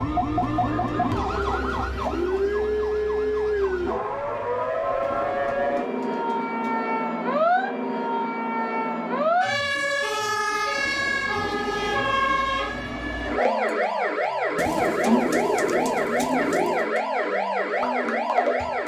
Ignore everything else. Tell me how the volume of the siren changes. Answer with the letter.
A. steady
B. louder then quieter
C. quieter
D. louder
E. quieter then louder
A.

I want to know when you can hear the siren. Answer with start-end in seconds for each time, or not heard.
0.0-18.8.